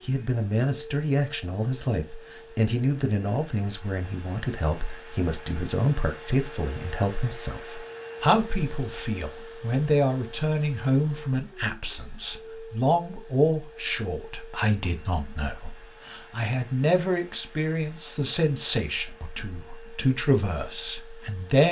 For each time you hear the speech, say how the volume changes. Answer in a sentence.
You can hear the speech from 0.1 to 21.6 s, at a steady volume.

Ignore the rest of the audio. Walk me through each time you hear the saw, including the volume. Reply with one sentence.
The saw can't be heard in this clip.